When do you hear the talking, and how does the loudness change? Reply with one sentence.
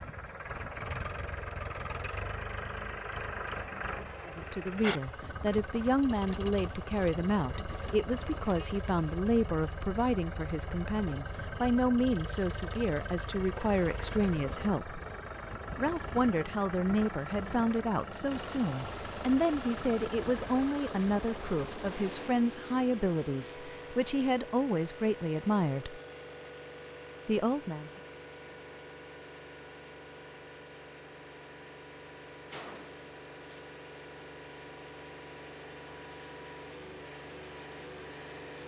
You can hear the talking from 4.2 to 15.0 s, at a steady volume; from 15.8 to 26.0 s, at a steady volume; and briefly from 27.2 to 27.9 s.